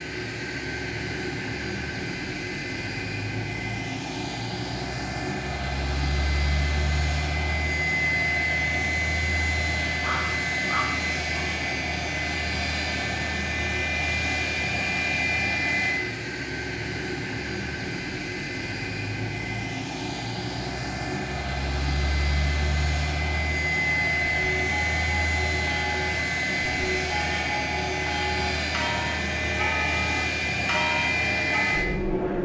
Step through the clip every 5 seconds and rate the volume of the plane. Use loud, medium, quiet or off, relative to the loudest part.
medium, loud, loud, loud, loud, loud, loud.